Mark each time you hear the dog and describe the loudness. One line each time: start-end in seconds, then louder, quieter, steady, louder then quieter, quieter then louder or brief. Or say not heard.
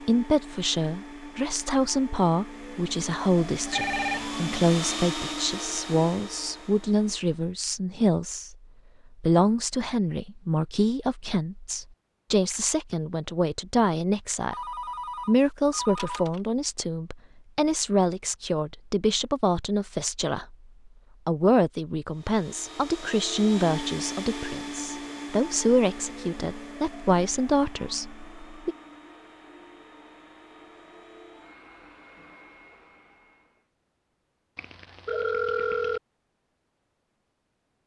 not heard.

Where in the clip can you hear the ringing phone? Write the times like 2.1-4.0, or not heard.
3.7-4.3, 14.5-16.4, 34.5-36.0.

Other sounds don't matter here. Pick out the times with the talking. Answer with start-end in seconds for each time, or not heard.
0.1-8.6, 9.2-14.6, 15.2-20.6, 21.2-28.8.